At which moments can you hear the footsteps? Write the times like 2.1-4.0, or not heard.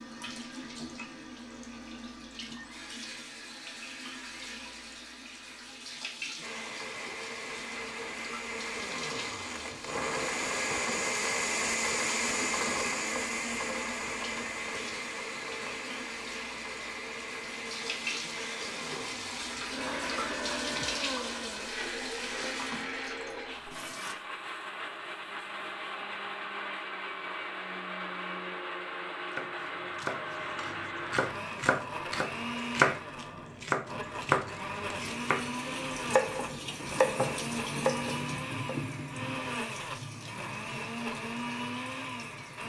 not heard.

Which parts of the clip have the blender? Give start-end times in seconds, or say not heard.
6.4-42.6.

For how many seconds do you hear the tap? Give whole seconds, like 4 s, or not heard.
32 s.